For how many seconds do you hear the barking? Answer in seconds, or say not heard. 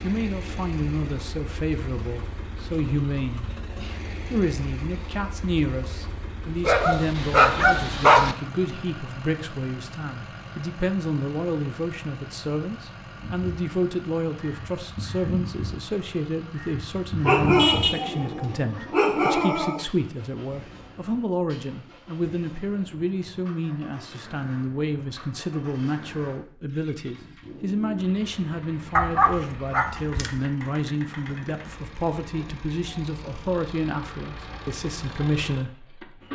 6 s.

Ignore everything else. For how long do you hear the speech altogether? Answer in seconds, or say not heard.
35 s.